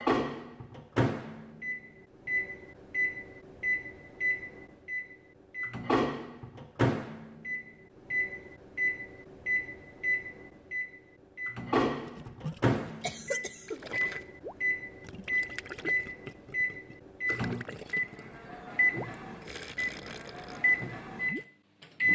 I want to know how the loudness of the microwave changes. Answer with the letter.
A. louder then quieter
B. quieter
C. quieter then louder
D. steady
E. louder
D.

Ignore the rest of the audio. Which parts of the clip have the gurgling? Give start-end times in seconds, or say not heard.
12.0-21.4.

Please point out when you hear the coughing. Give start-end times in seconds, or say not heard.
12.8-13.8.